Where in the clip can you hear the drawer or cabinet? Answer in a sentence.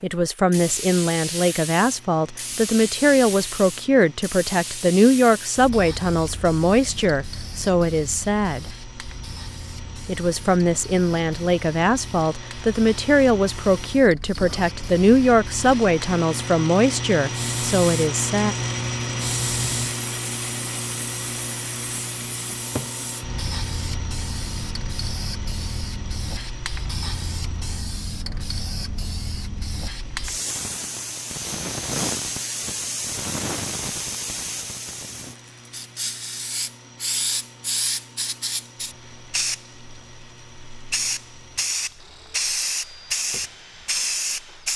The drawer or cabinet can be heard from 22.5 to 22.9 s.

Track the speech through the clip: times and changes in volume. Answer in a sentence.
You can hear the speech from 0.0 to 8.7 s, at a steady volume; and from 10.1 to 18.6 s, at a steady volume.